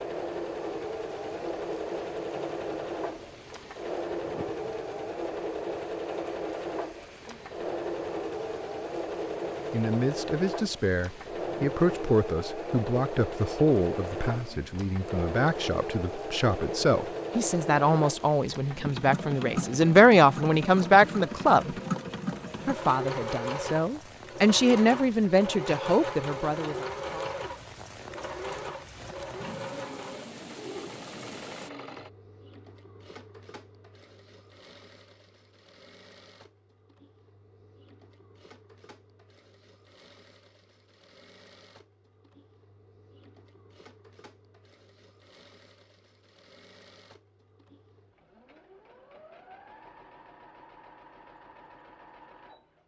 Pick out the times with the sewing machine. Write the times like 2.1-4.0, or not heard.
0.0-52.8.